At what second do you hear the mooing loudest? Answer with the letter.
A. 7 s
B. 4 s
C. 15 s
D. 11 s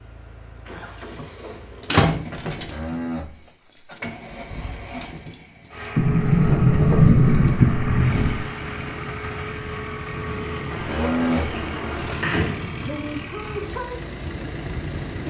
D.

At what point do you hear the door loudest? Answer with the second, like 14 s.
7 s.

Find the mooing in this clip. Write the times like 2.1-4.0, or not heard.
2.5-4.0, 10.8-12.2.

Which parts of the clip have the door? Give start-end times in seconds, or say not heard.
1.9-2.6, 6.0-8.4, 10.7-12.9.